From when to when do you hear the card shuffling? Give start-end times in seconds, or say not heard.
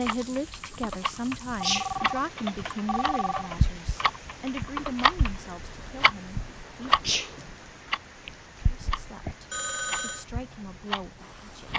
not heard.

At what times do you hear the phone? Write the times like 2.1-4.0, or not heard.
1.6-3.5, 9.5-10.2.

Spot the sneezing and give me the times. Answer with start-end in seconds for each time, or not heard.
1.6-2.1, 7.0-7.5.